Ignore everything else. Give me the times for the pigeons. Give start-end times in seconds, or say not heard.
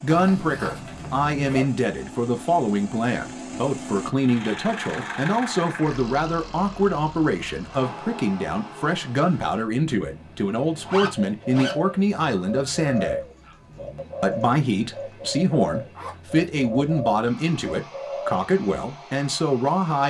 11.2-18.4.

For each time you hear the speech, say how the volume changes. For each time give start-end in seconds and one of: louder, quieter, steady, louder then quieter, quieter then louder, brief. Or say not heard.
0.0-13.2 steady
14.2-20.0 steady.